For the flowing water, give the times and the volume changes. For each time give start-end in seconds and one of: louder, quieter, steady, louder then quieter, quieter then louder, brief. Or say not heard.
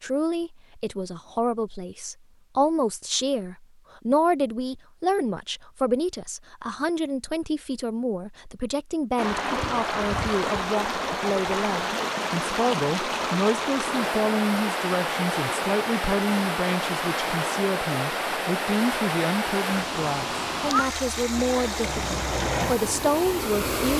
9.2-23.9 steady.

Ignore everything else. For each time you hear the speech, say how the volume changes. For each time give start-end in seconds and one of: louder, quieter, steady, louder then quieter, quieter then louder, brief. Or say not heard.
0.0-23.9 steady.